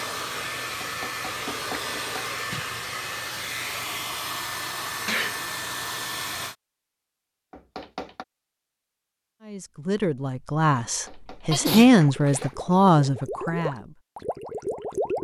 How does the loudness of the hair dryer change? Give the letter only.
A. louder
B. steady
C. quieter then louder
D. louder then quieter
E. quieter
B.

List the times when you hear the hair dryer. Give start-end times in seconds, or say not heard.
0.0-6.5.